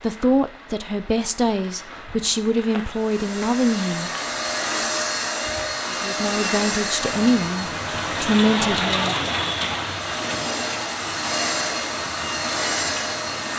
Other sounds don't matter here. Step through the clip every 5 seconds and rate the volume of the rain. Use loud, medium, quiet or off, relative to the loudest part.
quiet, loud, medium.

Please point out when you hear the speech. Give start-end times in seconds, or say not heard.
0.0-4.1, 5.9-9.2.